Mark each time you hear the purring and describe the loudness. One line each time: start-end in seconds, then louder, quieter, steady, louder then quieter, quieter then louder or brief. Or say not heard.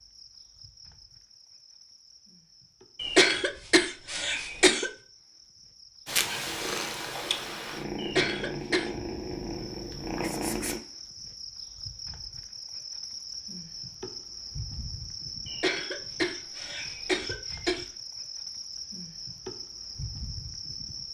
6.0-10.8 steady.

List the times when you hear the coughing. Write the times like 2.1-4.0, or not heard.
3.0-4.9, 8.0-8.9, 15.4-17.9.